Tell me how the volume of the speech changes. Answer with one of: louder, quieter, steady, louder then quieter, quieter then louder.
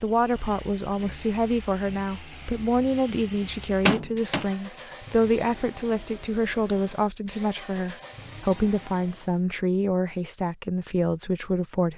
steady.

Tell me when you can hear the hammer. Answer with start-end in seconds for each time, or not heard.
3.2-4.5.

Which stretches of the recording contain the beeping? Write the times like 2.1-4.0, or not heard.
not heard.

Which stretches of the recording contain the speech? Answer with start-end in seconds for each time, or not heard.
0.0-11.9.